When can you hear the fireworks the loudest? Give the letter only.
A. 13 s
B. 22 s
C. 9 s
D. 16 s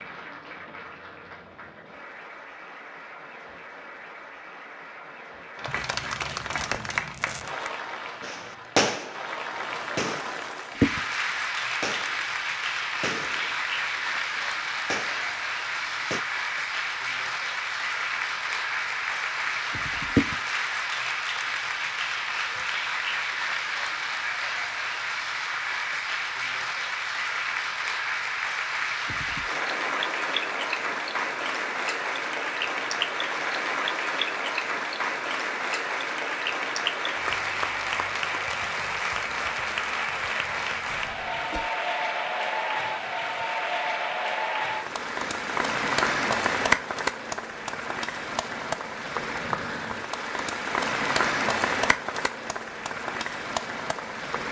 C.